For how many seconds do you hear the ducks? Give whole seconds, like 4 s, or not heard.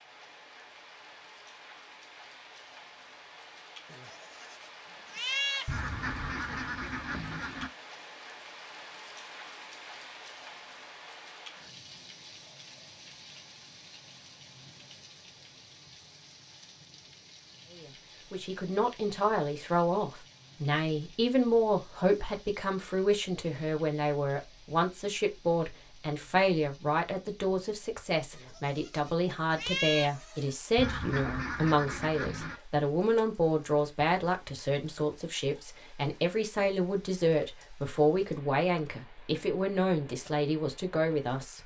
4 s.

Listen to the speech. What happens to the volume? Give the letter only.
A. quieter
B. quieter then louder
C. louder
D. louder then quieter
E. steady
E.